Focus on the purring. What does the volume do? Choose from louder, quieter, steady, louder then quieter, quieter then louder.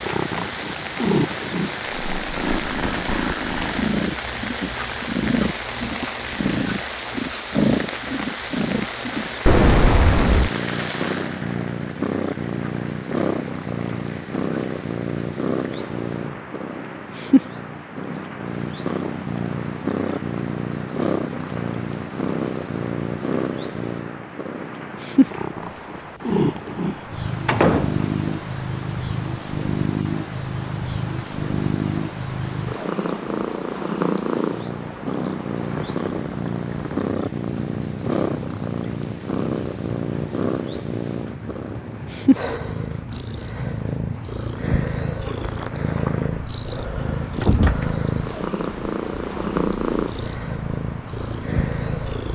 steady.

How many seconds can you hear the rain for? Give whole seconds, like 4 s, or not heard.
52 s.